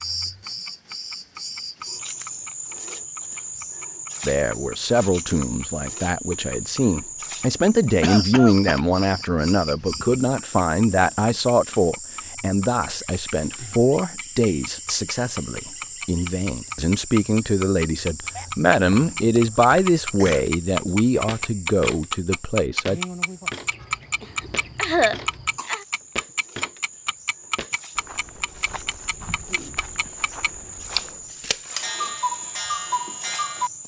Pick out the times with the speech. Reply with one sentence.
You can hear the speech from 4.2 to 23.0 s.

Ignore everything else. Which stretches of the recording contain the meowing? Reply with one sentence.
The meowing can be heard from 29.4 to 30.1 s.